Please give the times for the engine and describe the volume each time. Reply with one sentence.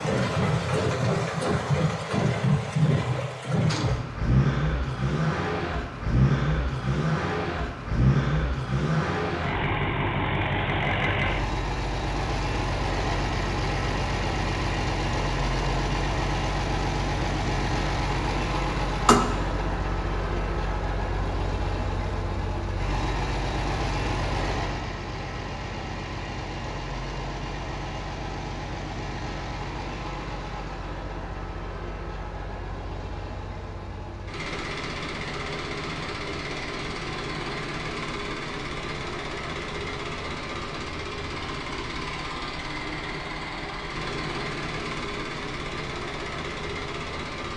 The engine can be heard from 0.0 to 47.5 s, getting quieter.